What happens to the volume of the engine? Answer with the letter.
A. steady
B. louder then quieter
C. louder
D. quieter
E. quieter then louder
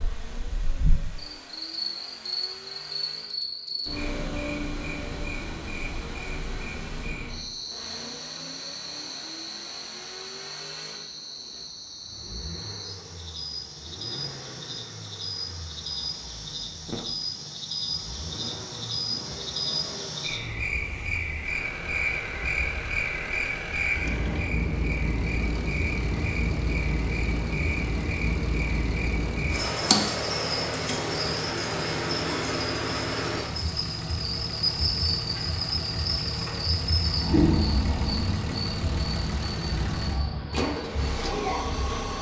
C.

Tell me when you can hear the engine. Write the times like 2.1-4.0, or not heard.
0.0-42.1.